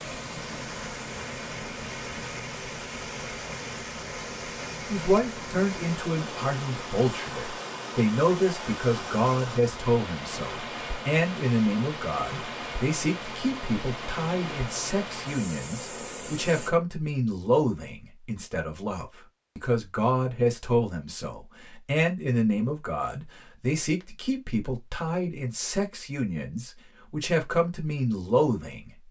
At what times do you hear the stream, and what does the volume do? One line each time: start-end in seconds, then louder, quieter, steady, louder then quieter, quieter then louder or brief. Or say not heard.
0.0-16.7 steady.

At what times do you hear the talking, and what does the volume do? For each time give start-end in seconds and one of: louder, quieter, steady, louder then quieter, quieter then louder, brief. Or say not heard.
4.9-29.0 steady.